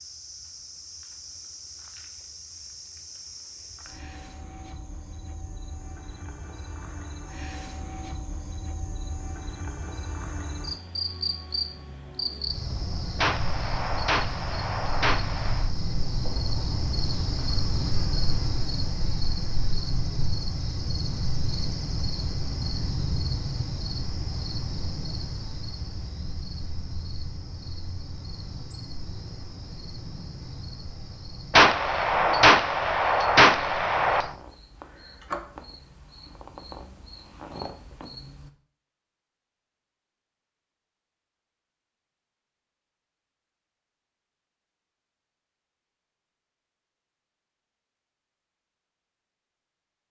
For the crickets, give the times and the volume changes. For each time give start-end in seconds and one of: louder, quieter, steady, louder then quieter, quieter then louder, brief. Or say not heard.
0.0-38.5 louder then quieter.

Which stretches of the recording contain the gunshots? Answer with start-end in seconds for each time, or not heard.
13.2-15.7, 31.5-34.3.